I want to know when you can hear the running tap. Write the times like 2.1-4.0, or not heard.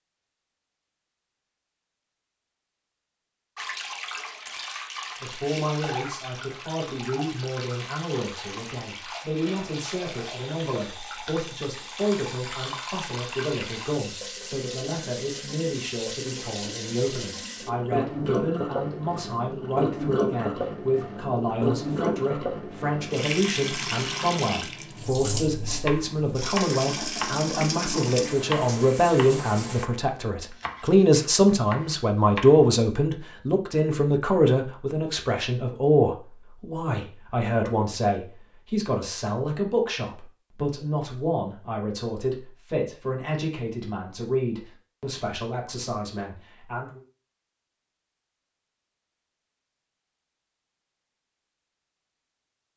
3.5-29.9.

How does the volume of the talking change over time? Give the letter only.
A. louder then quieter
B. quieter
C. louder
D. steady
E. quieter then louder
A.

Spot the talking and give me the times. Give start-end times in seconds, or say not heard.
5.2-47.0.